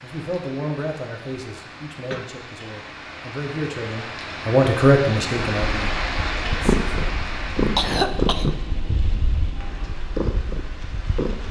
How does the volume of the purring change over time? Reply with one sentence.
The volume of the purring goes down, then up.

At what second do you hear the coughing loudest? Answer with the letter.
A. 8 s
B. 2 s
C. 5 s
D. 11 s
A.